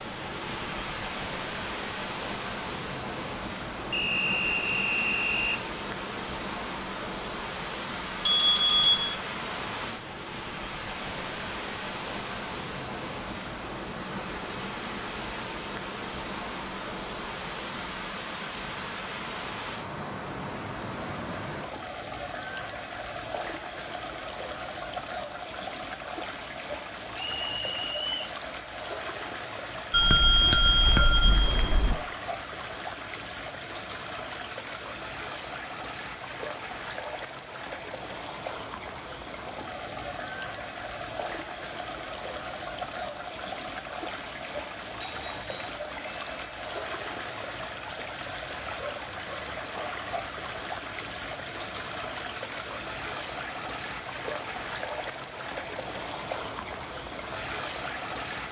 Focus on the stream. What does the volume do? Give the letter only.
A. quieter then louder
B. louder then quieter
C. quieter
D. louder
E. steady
E.